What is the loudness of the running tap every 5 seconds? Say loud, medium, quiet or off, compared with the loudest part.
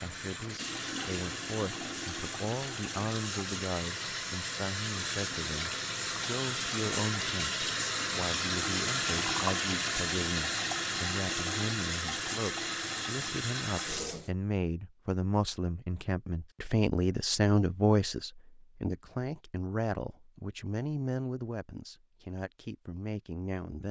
medium, loud, loud, off, off.